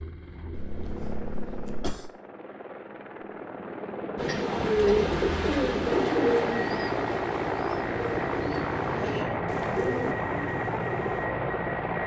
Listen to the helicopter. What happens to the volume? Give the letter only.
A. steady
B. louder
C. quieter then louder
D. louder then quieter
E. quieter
B.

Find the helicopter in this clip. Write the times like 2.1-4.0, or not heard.
0.0-12.0.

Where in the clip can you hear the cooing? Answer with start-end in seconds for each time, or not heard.
4.2-11.3.